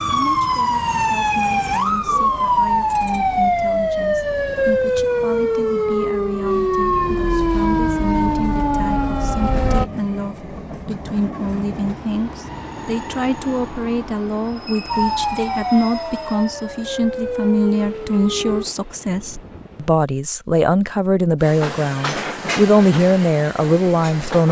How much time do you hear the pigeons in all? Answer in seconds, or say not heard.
not heard.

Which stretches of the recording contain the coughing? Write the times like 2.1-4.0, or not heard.
not heard.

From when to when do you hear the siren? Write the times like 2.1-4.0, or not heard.
0.0-9.8, 14.9-18.6.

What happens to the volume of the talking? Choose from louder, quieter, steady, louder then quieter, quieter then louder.
louder.